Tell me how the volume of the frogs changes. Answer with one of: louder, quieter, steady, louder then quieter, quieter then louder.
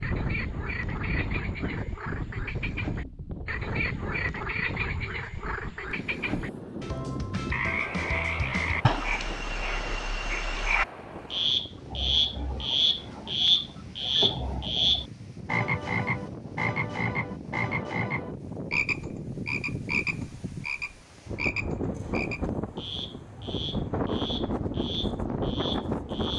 louder then quieter.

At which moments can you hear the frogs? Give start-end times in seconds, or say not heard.
0.0-26.3.